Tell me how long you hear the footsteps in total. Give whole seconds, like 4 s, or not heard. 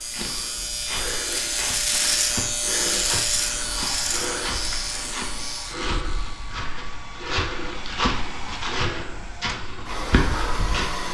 11 s.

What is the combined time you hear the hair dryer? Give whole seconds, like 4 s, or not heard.
7 s.